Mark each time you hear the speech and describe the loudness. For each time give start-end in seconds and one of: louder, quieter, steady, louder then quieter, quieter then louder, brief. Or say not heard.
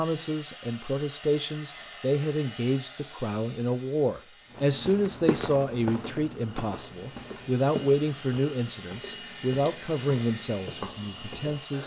0.0-11.8 steady.